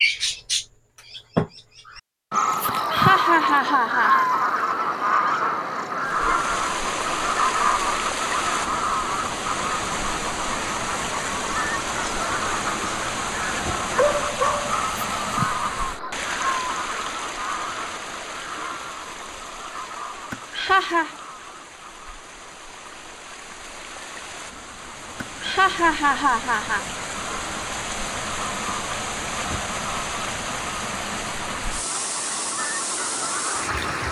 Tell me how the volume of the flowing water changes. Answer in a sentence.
The loudness of the flowing water goes down, then up.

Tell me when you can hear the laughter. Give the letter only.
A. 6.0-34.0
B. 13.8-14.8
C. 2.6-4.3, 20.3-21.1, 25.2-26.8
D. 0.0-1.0
C.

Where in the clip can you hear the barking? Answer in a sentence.
You can hear the barking from 13.8 to 14.8 s.